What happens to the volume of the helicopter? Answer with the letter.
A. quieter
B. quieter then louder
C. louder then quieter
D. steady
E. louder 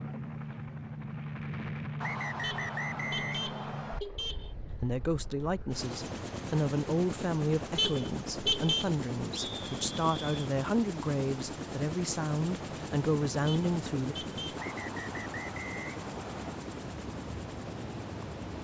D.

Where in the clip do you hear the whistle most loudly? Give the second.
3 s.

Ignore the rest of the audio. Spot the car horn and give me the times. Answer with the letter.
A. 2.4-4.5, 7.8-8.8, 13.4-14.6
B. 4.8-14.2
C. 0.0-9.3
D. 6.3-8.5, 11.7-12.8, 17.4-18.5
A.